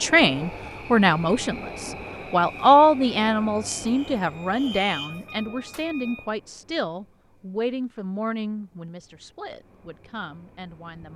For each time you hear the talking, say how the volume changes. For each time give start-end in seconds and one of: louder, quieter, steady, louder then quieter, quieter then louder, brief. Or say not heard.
0.0-11.1 quieter.